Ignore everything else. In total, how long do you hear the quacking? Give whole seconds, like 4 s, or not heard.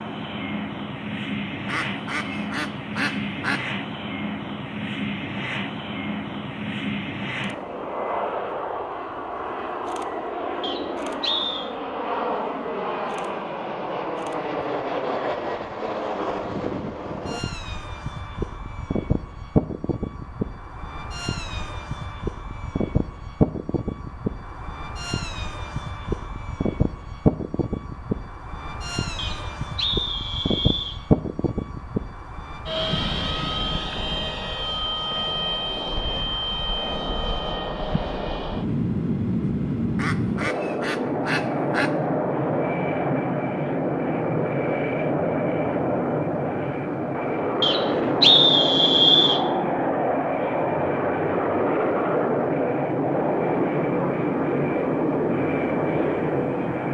4 s.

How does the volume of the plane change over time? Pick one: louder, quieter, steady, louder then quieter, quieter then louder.
louder.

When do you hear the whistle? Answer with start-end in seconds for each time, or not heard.
10.6-11.7, 29.1-31.0, 47.6-49.4.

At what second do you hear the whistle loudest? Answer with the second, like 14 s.
48 s.